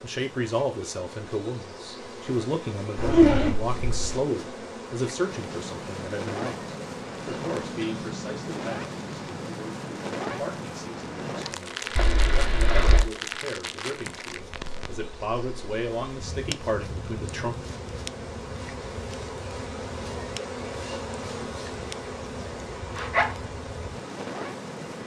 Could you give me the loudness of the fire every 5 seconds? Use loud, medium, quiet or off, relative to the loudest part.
off, loud, loud, medium, medium.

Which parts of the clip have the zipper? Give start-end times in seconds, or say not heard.
3.0-4.2, 11.9-13.1, 22.9-23.4.